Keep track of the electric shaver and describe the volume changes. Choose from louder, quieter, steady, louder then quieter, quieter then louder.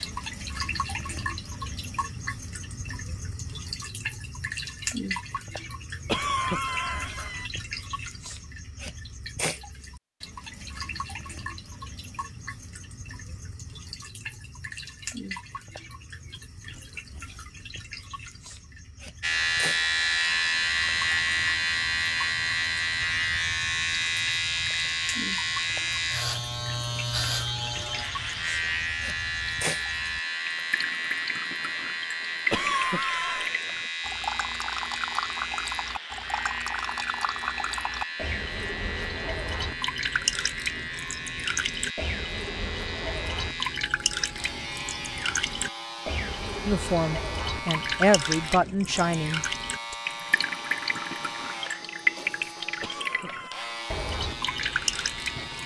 quieter.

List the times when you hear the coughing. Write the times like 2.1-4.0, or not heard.
6.0-7.5, 32.5-33.5, 52.8-53.8.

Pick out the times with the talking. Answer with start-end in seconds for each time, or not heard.
46.6-50.0.